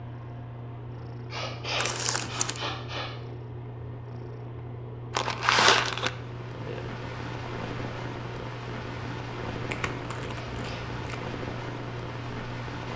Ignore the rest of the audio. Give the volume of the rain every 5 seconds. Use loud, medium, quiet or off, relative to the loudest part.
off, loud, loud.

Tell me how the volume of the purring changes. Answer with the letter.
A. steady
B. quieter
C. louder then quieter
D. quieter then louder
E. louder
A.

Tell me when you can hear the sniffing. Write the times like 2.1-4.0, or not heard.
1.3-3.1, 10.3-10.8.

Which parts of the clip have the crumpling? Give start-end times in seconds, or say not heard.
1.8-2.6, 5.1-6.1, 9.7-11.2.